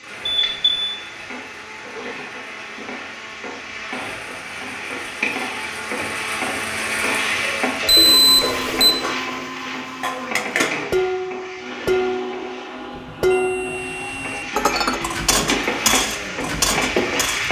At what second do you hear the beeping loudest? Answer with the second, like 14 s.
8 s.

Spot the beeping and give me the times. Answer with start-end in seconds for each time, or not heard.
0.2-0.9, 7.8-8.9, 12.9-14.4.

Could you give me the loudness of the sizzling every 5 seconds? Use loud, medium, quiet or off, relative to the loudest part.
medium, loud, medium, loud.